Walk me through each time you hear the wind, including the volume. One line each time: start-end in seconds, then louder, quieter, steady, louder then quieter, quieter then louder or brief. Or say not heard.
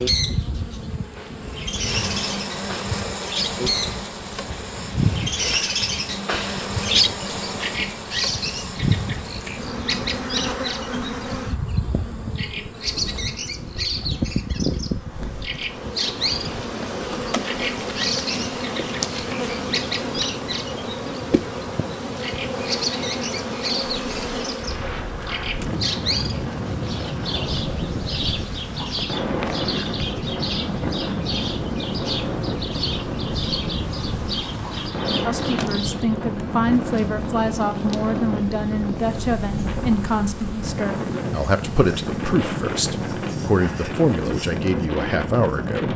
0.1-45.9 louder.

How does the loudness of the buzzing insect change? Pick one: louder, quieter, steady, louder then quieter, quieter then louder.
quieter.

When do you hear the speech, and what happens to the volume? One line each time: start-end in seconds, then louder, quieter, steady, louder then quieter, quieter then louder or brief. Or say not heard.
35.2-45.9 steady.